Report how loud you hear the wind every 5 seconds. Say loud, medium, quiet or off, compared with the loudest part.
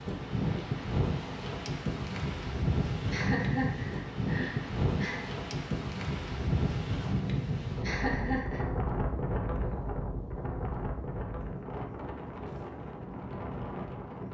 loud, loud, medium.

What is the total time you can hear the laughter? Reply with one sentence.
The laughter can be heard for 3 seconds in total.